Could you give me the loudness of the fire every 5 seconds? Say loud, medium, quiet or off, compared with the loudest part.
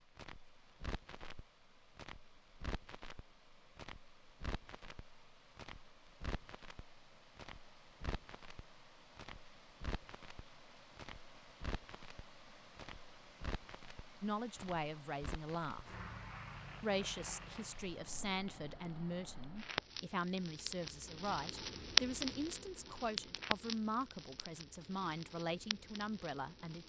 quiet, quiet, quiet, medium, loud, quiet.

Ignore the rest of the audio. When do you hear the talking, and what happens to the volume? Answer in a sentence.
You can hear the talking briefly from 14.2 to 15.8 s; and from 16.8 to 26.8 s, at a steady volume.